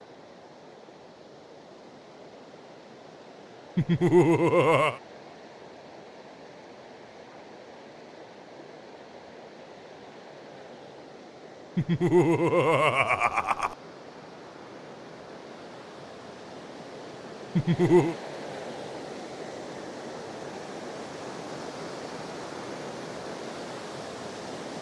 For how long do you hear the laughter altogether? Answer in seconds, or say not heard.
4 s.